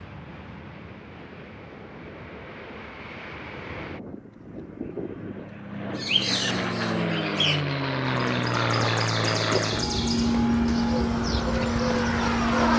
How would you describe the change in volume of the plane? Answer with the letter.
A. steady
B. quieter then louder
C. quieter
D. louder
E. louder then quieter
D.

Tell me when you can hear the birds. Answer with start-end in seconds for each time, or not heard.
6.0-12.7.